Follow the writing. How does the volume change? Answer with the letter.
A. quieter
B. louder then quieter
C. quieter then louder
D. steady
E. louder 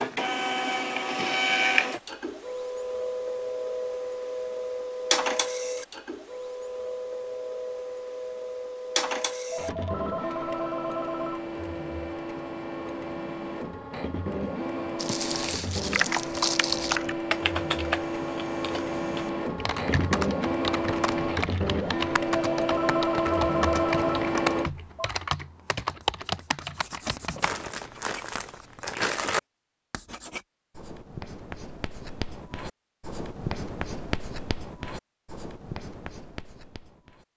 B.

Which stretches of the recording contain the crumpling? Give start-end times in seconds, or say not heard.
14.9-17.0, 27.4-29.4.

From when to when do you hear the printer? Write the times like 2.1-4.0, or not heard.
0.0-24.7.